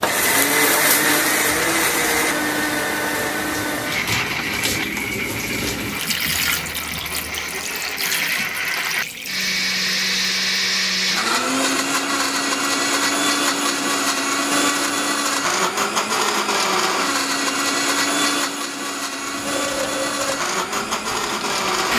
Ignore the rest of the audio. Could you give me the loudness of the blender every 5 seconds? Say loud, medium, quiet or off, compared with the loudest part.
loud, medium, loud, loud, loud.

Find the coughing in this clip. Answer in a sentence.
You can't hear the coughing here.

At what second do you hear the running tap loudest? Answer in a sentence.
The loudest moment of the running tap is at 6 seconds.